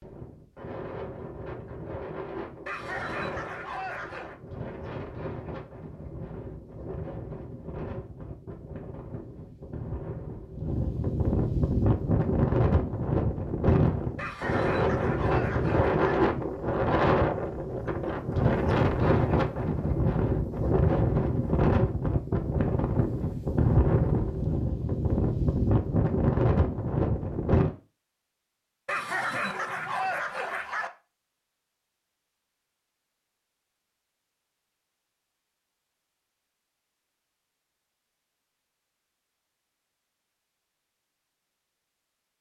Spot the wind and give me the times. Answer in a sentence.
The wind can be heard from 0.0 to 27.8 s.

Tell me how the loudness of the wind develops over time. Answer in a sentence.
The volume of the wind goes up.